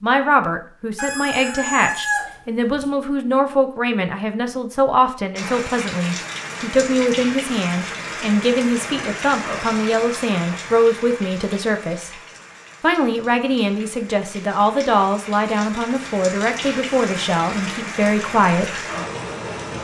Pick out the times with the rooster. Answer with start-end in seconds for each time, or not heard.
0.9-2.9.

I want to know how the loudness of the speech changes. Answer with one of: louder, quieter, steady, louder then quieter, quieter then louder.
steady.